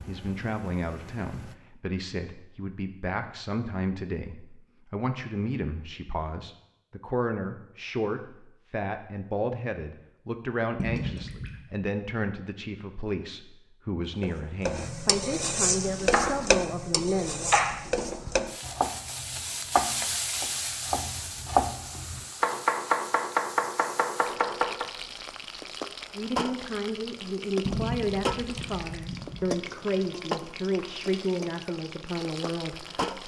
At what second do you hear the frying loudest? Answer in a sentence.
The volume of the frying peaks at 16 seconds.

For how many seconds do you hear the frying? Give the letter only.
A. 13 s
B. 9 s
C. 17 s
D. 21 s
D.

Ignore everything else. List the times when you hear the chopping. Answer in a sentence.
The chopping can be heard from 15.9 to 16.6 s and from 17.4 to 24.9 s.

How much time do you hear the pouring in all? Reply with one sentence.
You can hear the pouring for 3 seconds altogether.